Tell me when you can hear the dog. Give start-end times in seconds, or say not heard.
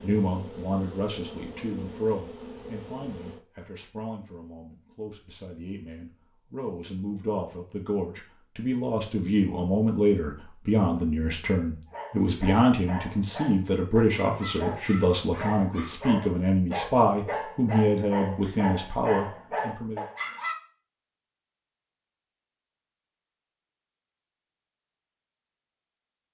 11.8-20.6.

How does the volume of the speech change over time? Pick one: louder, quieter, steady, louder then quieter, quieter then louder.
louder.